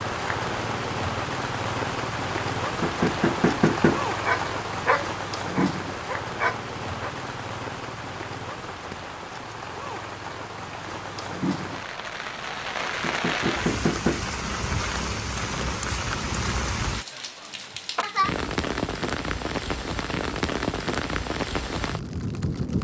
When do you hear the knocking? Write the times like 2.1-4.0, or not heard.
2.8-4.0, 13.0-14.3.